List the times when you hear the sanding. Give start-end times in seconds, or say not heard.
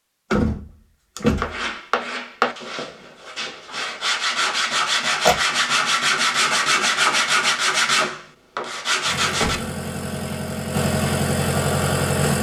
1.4-9.7.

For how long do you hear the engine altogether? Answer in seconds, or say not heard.
3 s.